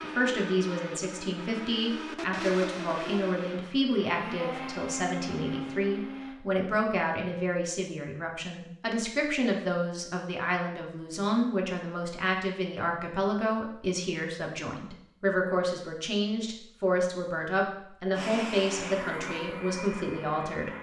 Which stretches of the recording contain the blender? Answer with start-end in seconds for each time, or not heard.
0.0-6.4, 18.1-20.7.